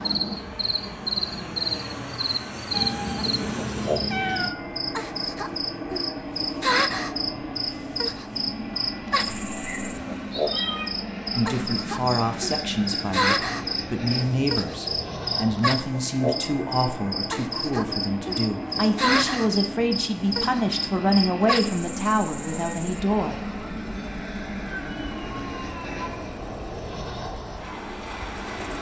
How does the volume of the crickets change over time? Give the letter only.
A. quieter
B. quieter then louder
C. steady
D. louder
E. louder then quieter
A.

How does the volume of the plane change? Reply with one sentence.
The loudness of the plane stays about the same.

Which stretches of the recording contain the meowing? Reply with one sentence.
You can hear the meowing from 2.7 to 4.5 s, from 9.7 to 10.9 s and from 24.6 to 26.3 s.